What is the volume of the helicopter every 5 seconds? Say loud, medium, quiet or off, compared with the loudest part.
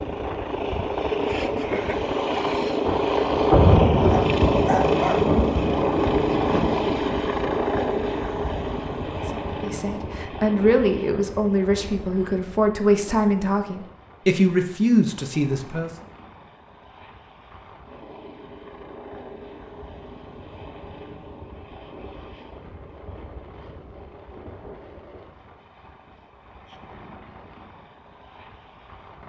loud, loud, quiet, quiet, quiet, quiet.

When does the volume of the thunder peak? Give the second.
4 s.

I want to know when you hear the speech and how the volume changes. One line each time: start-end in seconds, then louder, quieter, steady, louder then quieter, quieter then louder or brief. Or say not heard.
9.3-15.9 steady.